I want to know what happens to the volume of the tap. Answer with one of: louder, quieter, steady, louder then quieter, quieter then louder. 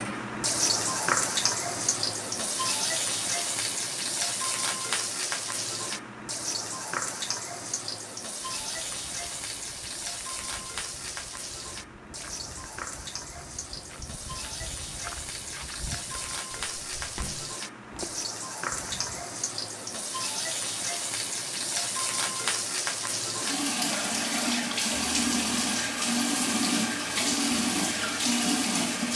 quieter then louder.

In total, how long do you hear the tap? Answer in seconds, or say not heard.
29 s.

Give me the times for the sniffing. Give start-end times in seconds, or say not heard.
not heard.